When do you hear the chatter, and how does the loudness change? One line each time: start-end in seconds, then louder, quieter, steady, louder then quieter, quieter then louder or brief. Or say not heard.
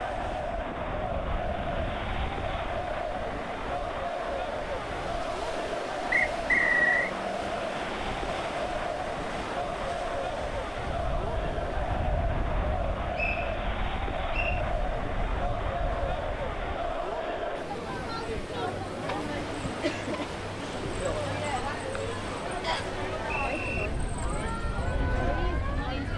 0.0-26.1 steady.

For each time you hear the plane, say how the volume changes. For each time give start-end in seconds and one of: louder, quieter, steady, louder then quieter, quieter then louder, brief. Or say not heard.
not heard.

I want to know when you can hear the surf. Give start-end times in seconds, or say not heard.
0.0-26.1.